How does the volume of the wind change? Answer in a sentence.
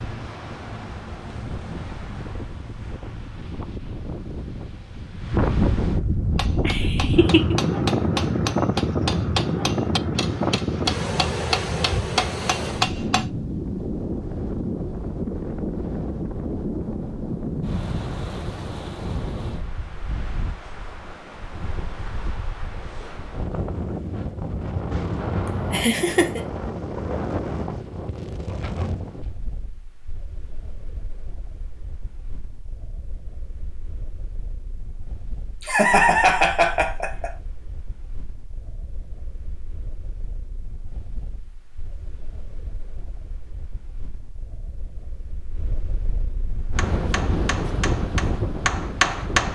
The volume of the wind goes down, then up.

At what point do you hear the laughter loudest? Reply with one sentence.
The loudest moment of the laughter is at 36 seconds.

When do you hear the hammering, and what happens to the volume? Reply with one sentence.
You can hear the hammering from 6.3 to 13.2 s, getting louder; and briefly from 46.8 to 49.5 s.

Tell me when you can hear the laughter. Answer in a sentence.
You can hear the laughter from 6.6 to 7.5 s, from 25.4 to 26.4 s and from 35.6 to 37.3 s.